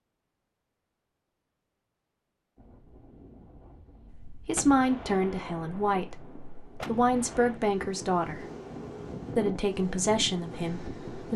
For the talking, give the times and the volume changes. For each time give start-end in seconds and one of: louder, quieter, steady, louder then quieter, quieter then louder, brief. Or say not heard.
4.2-8.4 quieter then louder
9.3-11.3 brief.